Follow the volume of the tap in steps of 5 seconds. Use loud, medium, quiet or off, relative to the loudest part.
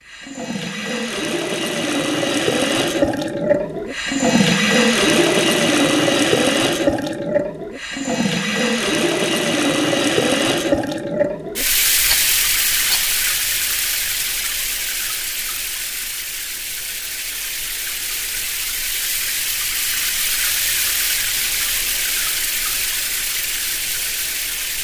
loud, loud, loud, medium, medium.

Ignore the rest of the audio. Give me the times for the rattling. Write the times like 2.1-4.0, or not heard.
12.0-13.2.